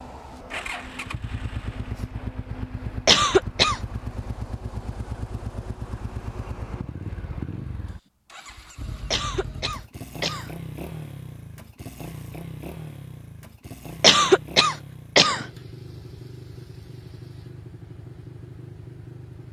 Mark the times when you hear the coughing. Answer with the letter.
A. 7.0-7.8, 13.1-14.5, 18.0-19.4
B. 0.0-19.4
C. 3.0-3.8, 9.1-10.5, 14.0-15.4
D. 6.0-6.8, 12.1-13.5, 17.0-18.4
C.